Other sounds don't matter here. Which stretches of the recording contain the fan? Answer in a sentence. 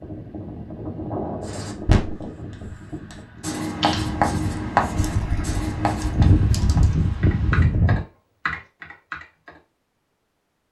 You can hear the fan from 0.0 to 8.1 s.